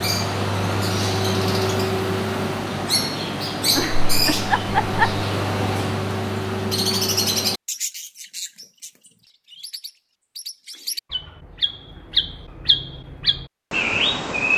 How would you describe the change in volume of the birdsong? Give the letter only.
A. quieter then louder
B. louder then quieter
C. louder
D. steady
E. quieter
A.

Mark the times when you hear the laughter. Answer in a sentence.
You can hear the laughter from 3.8 to 5.2 s.